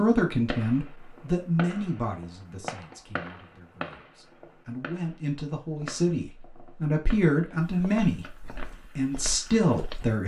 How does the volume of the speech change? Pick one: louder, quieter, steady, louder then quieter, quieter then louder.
quieter then louder.